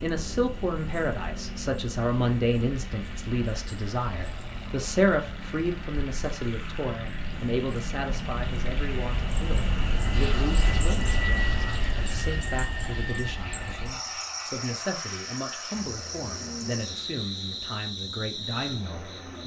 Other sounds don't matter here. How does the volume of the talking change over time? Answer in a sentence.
The volume of the talking goes down.